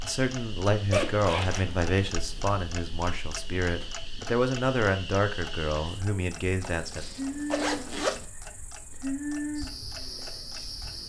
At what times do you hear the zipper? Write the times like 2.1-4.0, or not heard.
0.9-1.9, 6.8-8.2.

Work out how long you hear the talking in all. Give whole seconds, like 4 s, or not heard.
7 s.